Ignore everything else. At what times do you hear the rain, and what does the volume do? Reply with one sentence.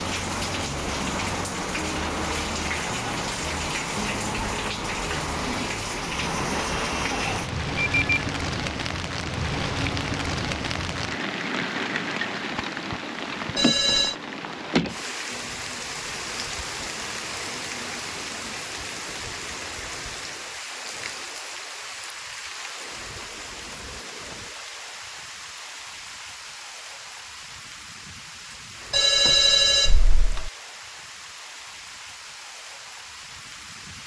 You can hear the rain from 0.0 to 34.0 s, getting quieter.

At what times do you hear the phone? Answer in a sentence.
The phone can be heard from 7.1 to 8.1 s, from 13.6 to 14.2 s and from 28.9 to 30.5 s.